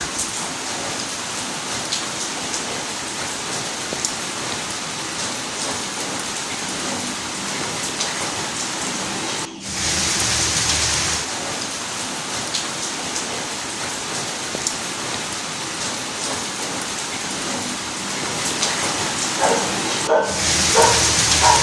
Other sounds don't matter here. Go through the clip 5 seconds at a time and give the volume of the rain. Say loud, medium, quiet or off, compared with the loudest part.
medium, medium, medium, medium, loud.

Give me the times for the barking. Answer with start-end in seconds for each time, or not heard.
19.4-21.5.